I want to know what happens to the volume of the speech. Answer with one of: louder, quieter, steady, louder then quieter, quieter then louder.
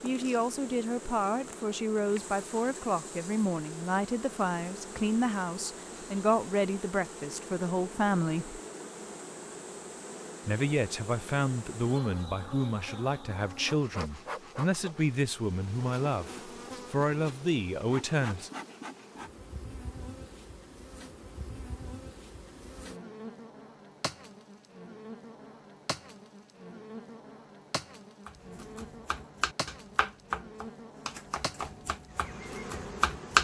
steady.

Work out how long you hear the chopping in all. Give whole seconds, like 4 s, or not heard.
5 s.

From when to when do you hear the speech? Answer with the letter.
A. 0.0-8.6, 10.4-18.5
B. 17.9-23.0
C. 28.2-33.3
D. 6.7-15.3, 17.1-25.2
A.